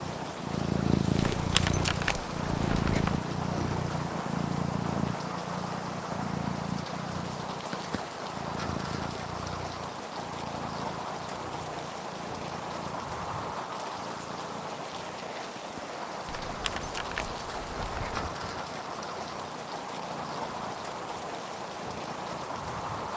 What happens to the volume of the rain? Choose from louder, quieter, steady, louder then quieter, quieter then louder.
steady.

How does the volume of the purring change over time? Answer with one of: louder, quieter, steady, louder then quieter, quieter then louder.
quieter.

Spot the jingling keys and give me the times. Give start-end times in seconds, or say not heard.
1.4-3.2, 16.3-18.3.